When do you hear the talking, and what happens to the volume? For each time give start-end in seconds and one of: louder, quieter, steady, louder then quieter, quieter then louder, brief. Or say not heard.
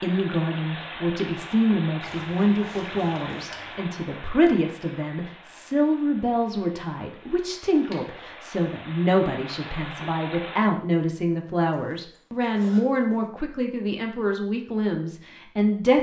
0.0-15.9 steady.